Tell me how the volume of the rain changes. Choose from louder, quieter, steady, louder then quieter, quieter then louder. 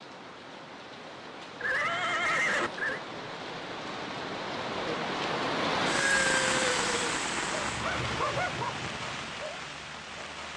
louder then quieter.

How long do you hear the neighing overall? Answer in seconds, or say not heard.
3 s.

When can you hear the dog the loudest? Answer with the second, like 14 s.
8 s.